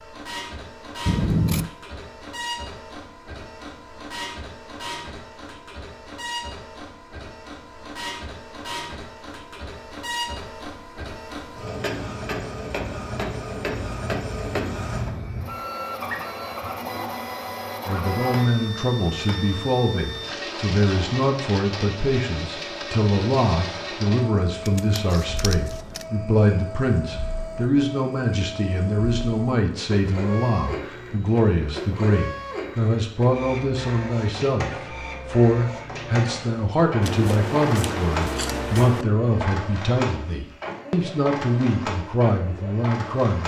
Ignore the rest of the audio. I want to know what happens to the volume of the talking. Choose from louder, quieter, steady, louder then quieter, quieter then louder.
steady.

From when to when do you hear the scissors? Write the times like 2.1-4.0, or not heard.
1.1-1.7, 24.6-26.1, 37.0-39.0.